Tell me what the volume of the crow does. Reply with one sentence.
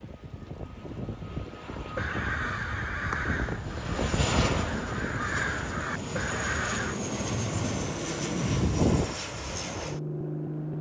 The loudness of the crow goes down, then up.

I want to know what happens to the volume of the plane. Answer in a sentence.
The loudness of the plane goes up.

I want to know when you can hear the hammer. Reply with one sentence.
You can't hear the hammer here.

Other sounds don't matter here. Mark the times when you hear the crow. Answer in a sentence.
You can hear the crow from 1.8 to 7.0 s.